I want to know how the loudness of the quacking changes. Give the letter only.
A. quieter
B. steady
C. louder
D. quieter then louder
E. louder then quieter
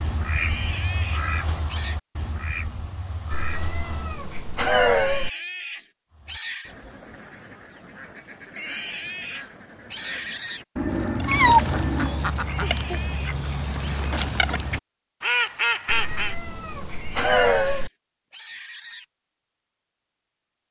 D.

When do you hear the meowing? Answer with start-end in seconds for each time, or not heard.
3.3-5.3, 10.8-12.2, 15.8-17.9.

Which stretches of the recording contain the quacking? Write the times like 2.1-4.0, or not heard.
0.0-4.2, 6.1-16.4.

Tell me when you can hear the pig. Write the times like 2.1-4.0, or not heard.
0.3-2.0, 4.9-6.8, 8.6-10.7, 12.4-14.1, 16.9-19.1.